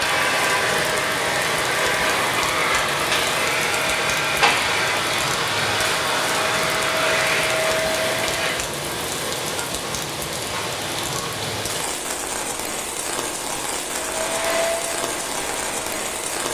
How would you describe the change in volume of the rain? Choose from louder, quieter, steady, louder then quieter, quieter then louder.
steady.